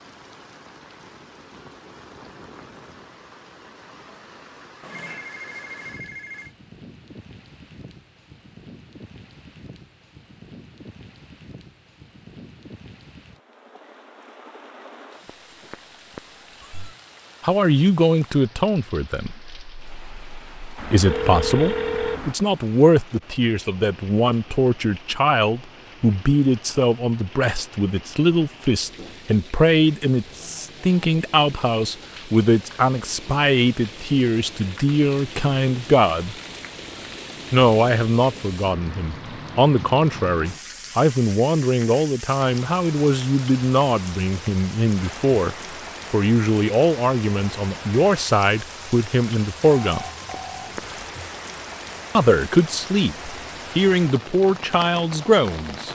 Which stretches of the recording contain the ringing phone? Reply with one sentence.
You can hear the ringing phone from 4.8 to 6.5 s, from 20.8 to 22.4 s and from 49.6 to 50.9 s.